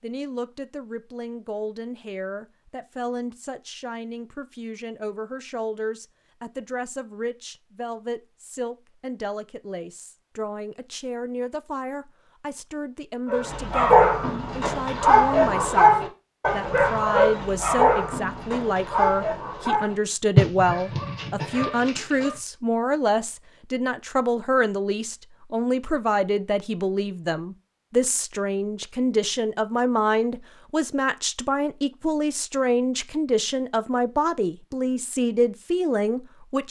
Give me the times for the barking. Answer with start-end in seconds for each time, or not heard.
13.2-22.4.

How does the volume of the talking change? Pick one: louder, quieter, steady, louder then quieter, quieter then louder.
louder.